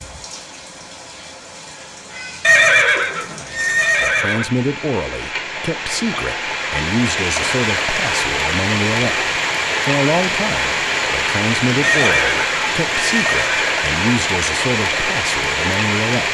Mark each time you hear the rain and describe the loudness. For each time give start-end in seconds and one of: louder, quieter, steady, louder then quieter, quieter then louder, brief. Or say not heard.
0.0-16.3 louder.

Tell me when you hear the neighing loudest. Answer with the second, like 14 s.
3 s.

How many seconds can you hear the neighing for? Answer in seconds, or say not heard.
4 s.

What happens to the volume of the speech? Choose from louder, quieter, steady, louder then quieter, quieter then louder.
steady.